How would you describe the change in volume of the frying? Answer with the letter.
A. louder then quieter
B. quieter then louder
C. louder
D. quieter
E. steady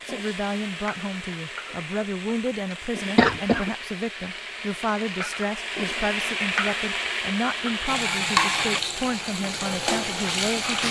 C.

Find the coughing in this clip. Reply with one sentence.
You can hear the coughing from 3.1 to 3.7 s.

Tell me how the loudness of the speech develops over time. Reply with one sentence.
The loudness of the speech stays about the same.